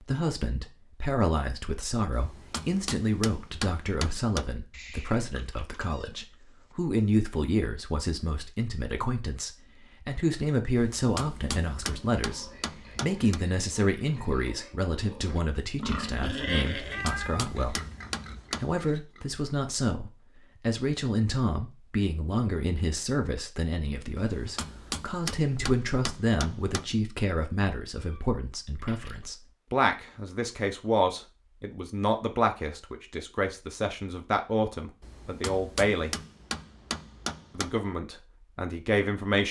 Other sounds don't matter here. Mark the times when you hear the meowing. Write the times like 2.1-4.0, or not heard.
4.7-6.8, 16.9-18.4, 28.0-29.2.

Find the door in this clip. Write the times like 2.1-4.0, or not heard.
not heard.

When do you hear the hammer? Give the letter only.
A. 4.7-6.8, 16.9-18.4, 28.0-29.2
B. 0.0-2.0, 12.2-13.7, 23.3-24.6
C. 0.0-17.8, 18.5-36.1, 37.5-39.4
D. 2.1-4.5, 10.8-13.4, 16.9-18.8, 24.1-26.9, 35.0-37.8
D.